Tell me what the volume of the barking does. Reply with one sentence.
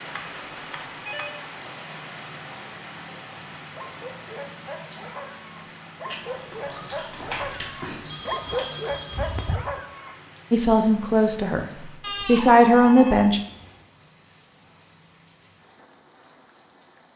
The loudness of the barking goes up.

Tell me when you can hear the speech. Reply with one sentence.
The speech can be heard from 10.5 to 13.4 s.